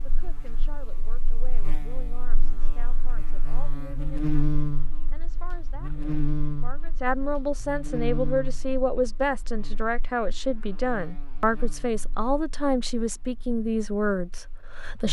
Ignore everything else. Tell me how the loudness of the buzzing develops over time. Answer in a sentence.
The volume of the buzzing goes up, then down.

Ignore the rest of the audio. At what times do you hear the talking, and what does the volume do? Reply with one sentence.
The talking can be heard from 0.0 to 15.0 s, getting louder.